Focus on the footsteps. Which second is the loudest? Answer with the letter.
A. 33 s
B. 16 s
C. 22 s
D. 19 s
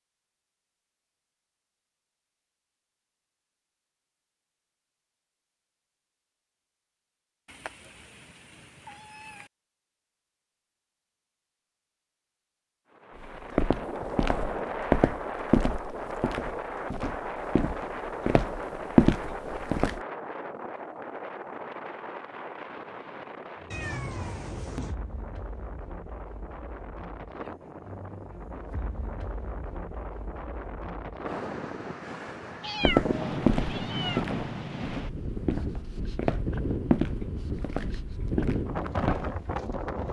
D.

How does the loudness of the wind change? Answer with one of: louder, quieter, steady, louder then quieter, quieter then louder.
quieter then louder.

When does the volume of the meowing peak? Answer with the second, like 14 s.
33 s.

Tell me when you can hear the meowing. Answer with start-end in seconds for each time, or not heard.
7.5-9.5, 23.7-24.9, 32.6-34.3.